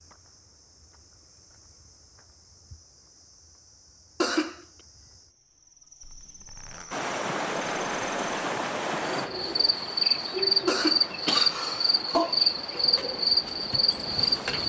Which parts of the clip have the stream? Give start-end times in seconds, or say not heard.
6.9-14.6.